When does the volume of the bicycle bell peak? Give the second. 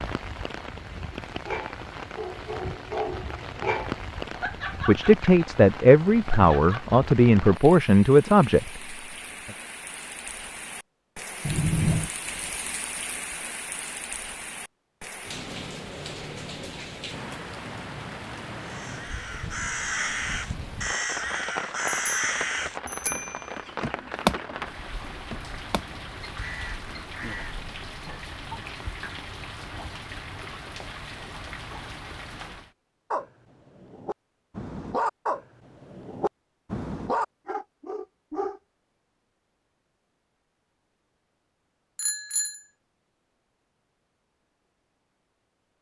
12 s.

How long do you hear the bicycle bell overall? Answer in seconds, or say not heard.
3 s.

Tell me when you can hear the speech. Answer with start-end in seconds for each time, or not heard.
4.8-8.8.